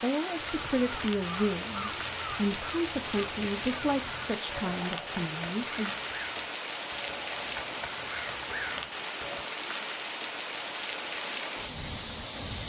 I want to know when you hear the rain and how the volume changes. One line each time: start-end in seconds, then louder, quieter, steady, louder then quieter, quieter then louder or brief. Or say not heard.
0.0-12.6 steady.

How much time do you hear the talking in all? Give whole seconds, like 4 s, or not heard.
6 s.